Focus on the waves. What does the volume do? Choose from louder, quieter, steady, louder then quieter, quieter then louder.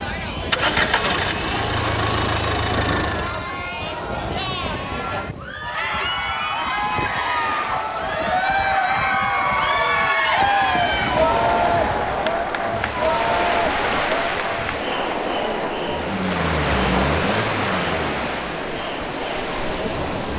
louder.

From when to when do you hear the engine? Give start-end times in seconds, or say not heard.
0.0-3.5, 15.7-20.3.